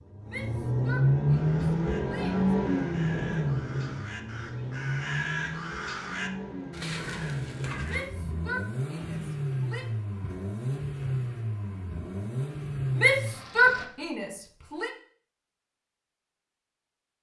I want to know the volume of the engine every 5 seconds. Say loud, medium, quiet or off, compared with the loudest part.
loud, medium, medium, off.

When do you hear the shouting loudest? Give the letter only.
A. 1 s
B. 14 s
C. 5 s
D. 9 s
B.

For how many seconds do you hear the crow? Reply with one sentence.
The crow can be heard for 7 seconds in total.